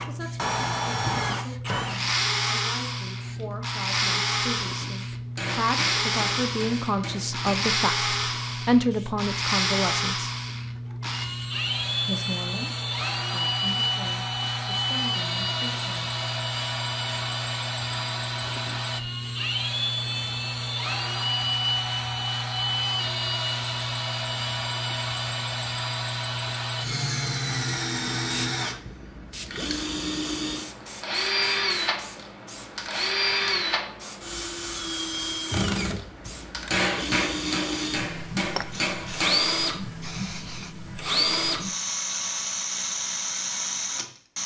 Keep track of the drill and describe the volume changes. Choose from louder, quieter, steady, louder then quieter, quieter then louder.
steady.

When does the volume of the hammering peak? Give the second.
37 s.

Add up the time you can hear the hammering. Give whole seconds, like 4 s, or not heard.
5 s.